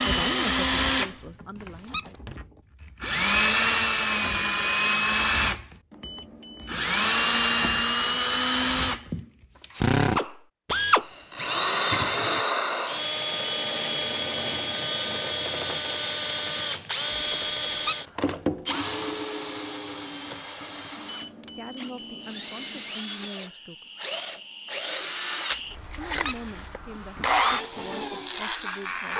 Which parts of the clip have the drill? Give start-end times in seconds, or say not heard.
0.0-29.1.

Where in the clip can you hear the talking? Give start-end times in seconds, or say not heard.
0.0-2.1, 21.6-23.9, 25.9-29.1.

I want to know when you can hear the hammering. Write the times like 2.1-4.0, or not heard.
not heard.